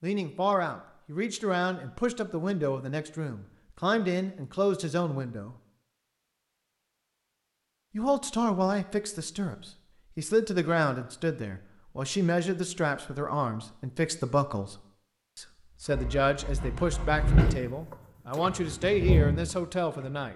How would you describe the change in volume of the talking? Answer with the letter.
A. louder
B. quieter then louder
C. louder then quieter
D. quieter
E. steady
E.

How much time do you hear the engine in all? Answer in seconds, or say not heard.
4 s.